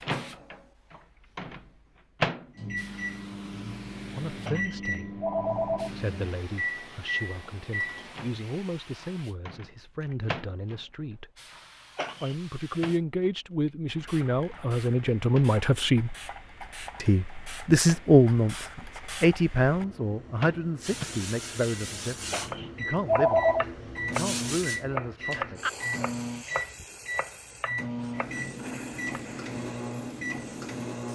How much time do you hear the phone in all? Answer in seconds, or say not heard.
3 s.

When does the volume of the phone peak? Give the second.
23 s.